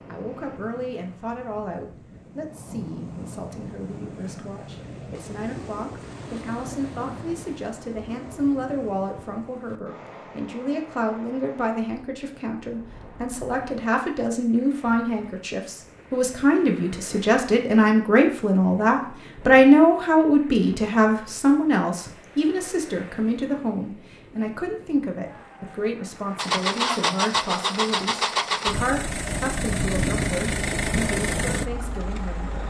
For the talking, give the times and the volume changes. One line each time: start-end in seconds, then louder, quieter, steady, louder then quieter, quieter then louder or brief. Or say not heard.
0.1-32.6 louder then quieter.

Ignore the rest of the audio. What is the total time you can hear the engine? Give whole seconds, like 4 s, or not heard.
6 s.